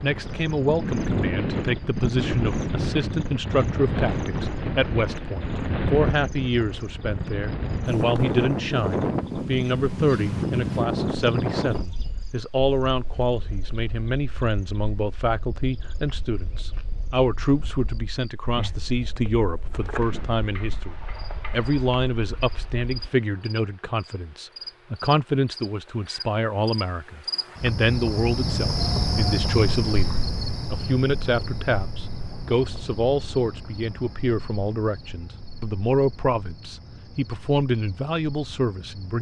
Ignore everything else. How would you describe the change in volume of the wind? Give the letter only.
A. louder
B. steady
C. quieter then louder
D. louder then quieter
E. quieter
E.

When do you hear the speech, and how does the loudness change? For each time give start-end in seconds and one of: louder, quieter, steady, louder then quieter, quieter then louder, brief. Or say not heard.
0.0-39.1 steady.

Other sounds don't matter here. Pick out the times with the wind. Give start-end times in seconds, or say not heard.
0.0-22.9.